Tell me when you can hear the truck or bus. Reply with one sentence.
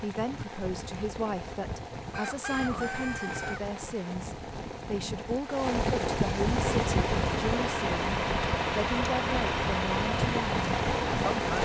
The truck or bus can be heard from 6.5 to 11.6 s.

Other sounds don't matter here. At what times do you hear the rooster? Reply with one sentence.
You can hear the rooster from 2.1 to 3.6 s.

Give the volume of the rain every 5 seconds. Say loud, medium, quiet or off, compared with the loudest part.
medium, loud, loud.